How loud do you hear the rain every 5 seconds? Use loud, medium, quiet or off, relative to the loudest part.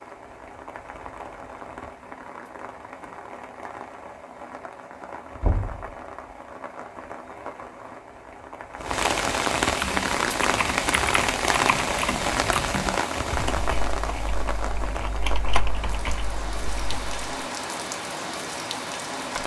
quiet, loud, loud, medium.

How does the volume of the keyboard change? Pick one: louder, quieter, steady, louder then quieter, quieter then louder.
quieter then louder.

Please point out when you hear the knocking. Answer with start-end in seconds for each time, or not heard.
5.4-5.8.